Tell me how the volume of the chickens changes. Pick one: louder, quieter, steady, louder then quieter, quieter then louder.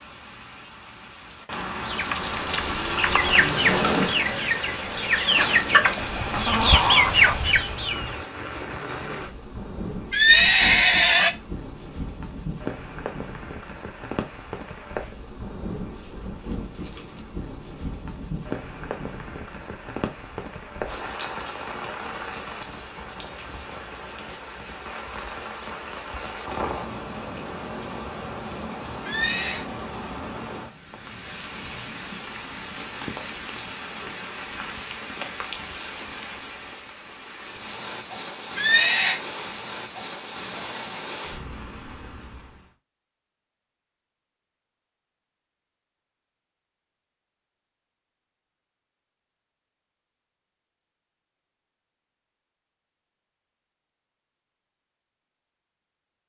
louder.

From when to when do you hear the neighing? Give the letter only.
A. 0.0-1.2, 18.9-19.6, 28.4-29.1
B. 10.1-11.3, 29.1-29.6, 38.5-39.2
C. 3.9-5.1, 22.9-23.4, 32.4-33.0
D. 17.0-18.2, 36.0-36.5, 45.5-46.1
B.